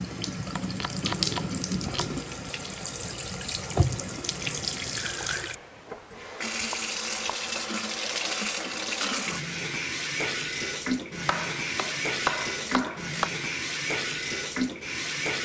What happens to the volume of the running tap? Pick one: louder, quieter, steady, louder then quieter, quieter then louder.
steady.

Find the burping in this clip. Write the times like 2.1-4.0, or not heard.
not heard.